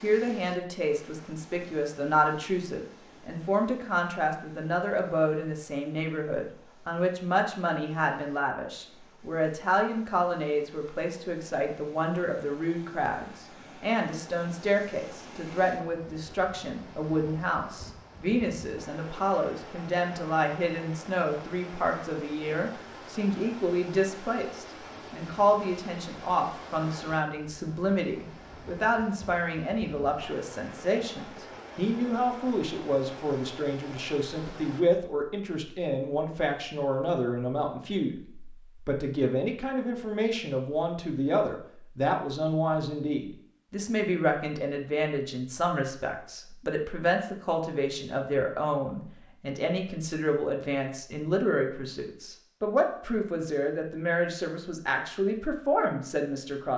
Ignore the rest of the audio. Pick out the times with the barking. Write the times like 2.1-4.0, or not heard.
not heard.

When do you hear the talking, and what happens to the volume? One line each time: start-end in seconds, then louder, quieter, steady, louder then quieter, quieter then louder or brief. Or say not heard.
0.0-56.7 steady.